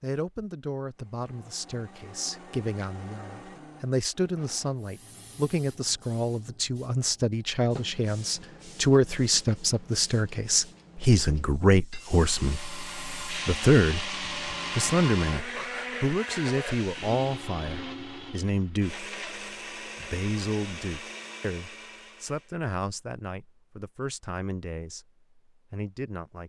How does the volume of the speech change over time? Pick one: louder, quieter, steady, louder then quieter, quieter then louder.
louder then quieter.